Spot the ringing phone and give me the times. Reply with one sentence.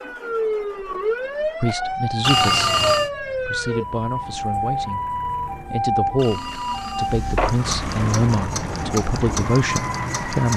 The ringing phone can be heard from 2.2 to 3.1 s and from 6.2 to 7.7 s.